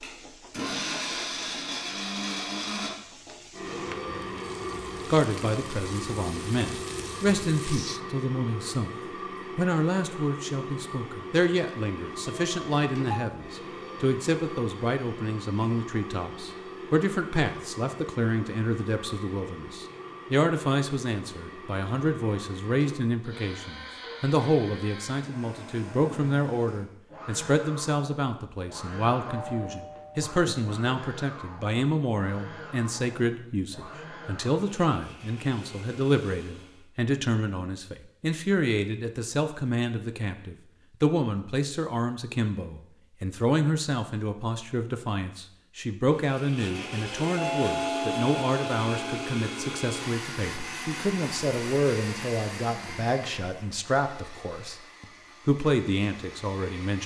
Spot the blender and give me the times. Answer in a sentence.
The blender can be heard from 0.0 to 36.9 s and from 46.1 to 57.0 s.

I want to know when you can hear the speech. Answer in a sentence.
The speech can be heard from 5.1 to 8.9 s and from 9.6 to 57.0 s.